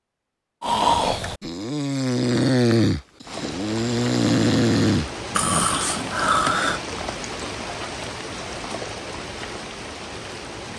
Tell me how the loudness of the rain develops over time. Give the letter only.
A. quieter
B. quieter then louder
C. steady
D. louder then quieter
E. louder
C.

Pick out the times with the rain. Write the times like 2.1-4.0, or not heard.
3.2-10.7.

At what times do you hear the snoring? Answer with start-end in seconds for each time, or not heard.
0.6-6.8.